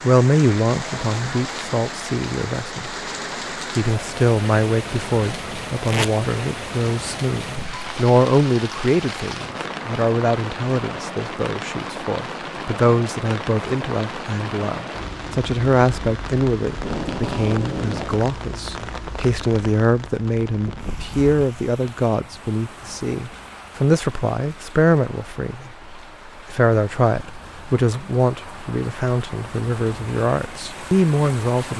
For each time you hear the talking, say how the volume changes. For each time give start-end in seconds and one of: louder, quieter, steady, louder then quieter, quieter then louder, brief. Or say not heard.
0.0-3.0 brief
3.5-31.7 steady.